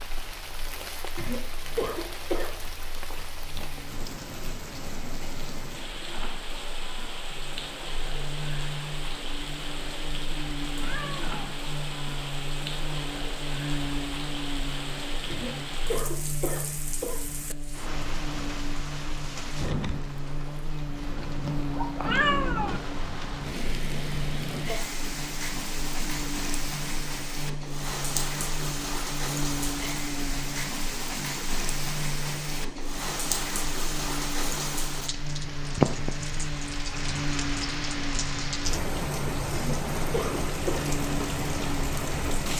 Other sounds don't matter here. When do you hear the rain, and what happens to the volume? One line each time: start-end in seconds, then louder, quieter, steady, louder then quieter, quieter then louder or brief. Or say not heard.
0.0-42.5 louder.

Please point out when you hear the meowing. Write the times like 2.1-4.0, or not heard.
10.8-11.3, 22.1-22.8.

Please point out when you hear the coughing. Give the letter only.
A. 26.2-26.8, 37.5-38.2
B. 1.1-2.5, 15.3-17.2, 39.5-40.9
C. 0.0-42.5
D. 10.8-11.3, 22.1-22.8
B.